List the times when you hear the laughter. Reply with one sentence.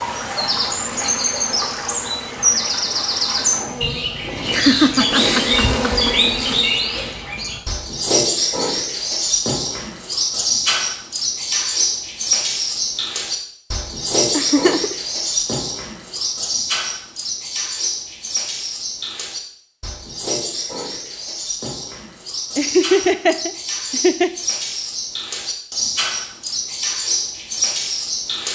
The laughter can be heard from 4.5 to 6.2 s, from 14.3 to 14.9 s and from 22.6 to 24.3 s.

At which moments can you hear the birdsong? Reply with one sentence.
You can hear the birdsong from 0.0 to 28.5 s.